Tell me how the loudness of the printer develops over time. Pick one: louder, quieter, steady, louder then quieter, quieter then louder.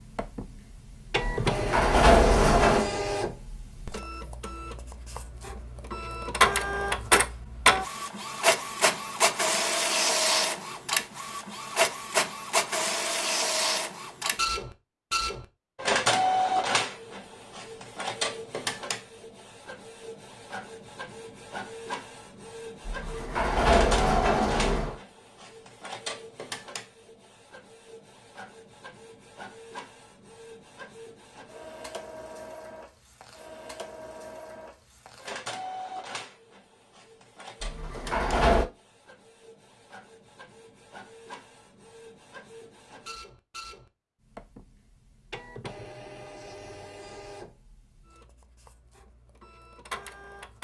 quieter.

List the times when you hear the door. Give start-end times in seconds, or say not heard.
1.2-2.9, 22.9-24.9, 37.6-38.6.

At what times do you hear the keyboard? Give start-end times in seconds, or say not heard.
not heard.